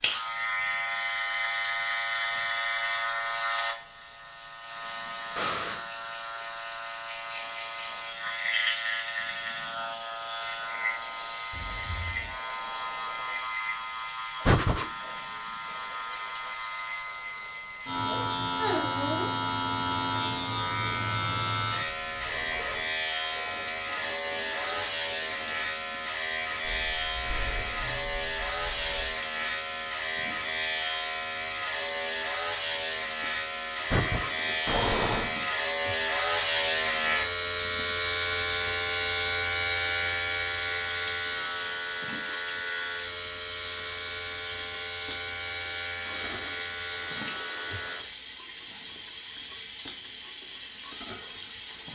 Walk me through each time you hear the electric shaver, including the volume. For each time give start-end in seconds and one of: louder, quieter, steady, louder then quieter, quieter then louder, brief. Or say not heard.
0.0-48.0 steady.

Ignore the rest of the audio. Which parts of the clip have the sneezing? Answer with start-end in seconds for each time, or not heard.
not heard.